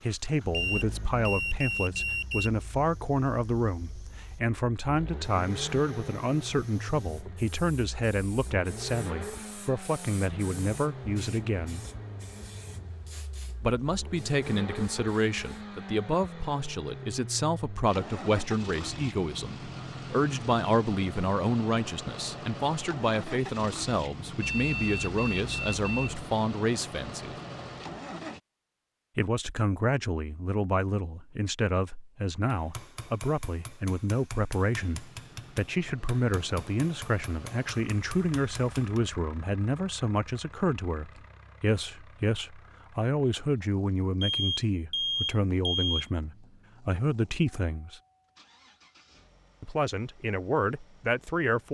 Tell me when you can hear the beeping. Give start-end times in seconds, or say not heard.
0.5-2.5, 24.4-26.1, 44.2-46.0.